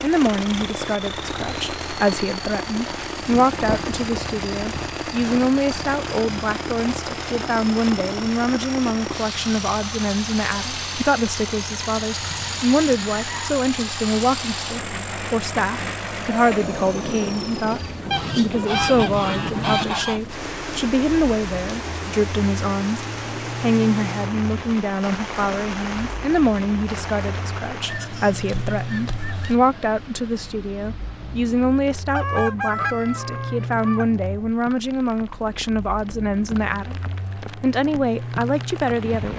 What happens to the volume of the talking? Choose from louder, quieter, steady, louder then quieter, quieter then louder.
steady.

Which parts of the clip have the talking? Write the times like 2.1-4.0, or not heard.
0.0-39.3.